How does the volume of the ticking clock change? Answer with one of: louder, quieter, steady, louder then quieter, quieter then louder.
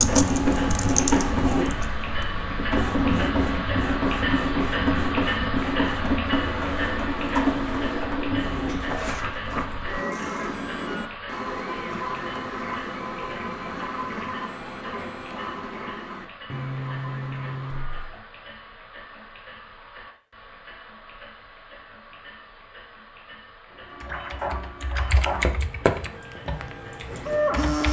quieter.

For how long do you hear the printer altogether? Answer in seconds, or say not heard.
22 s.